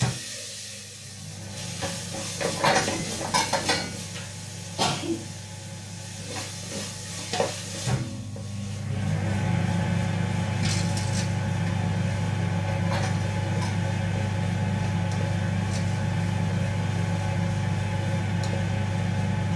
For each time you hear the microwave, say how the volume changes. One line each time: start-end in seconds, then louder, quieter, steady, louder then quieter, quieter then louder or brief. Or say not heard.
0.0-19.5 louder.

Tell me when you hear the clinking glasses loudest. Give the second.
3 s.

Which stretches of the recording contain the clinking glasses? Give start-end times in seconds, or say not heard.
2.4-4.0, 12.7-13.8.